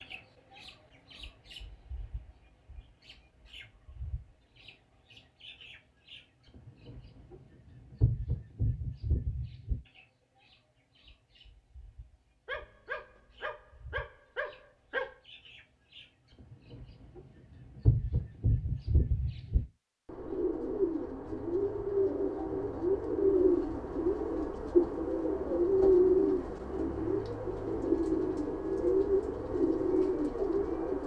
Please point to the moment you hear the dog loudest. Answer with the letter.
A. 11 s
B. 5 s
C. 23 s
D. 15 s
D.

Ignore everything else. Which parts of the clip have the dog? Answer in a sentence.
The dog can be heard from 12.4 to 15.2 s.